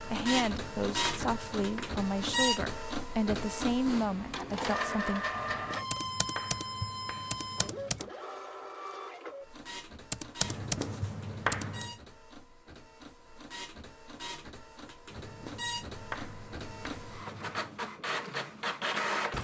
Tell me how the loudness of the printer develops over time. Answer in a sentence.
The volume of the printer goes down, then up.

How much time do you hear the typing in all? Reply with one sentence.
You can hear the typing for 4 seconds altogether.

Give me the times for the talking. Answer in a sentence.
You can hear the talking from 0.1 to 5.2 s.